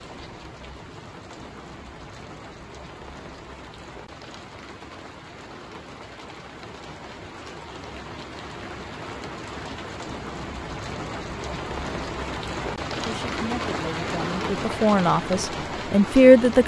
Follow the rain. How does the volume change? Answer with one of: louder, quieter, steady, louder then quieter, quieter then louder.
louder.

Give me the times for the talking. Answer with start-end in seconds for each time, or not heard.
13.0-16.6.